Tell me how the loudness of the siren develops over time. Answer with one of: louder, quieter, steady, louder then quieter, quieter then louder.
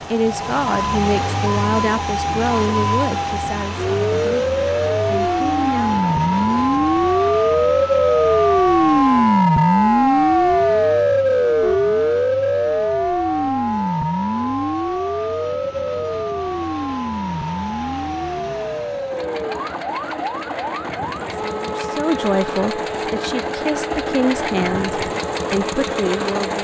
louder then quieter.